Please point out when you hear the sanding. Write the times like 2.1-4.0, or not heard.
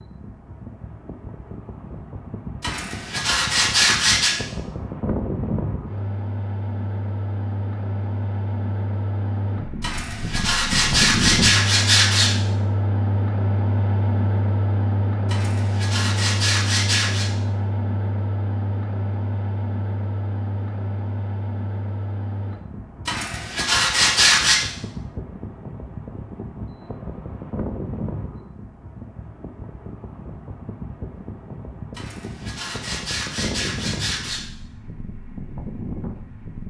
2.6-4.3, 9.8-12.3, 15.3-17.3, 23.1-24.6, 31.9-34.5.